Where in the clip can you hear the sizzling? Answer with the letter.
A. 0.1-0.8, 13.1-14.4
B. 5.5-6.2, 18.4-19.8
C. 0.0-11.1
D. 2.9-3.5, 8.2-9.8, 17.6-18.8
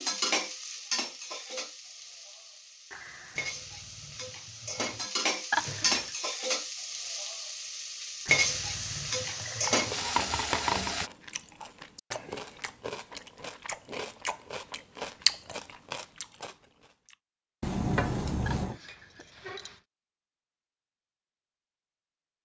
C.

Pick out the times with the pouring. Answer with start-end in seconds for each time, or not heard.
2.9-3.5, 8.2-9.8, 17.6-18.8.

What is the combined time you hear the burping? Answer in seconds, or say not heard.
2 s.